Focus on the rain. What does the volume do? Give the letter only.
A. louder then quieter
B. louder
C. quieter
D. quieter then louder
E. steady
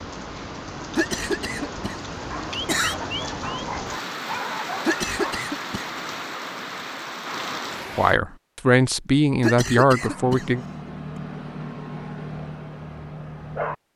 E.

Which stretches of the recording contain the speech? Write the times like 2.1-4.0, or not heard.
8.0-10.7.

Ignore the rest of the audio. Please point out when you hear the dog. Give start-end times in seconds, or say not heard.
2.3-5.5, 9.9-13.8.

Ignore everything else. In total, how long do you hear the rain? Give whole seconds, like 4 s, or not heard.
8 s.